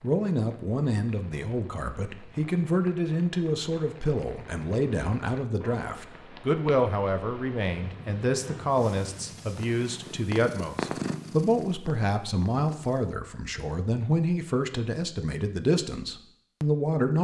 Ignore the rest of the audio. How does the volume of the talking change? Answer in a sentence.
The loudness of the talking stays about the same.